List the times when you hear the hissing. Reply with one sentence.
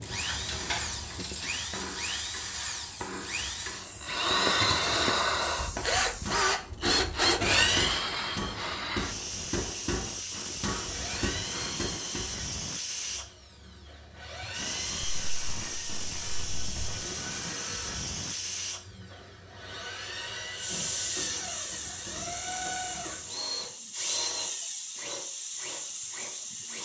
The hissing can be heard from 0.0 to 26.8 s.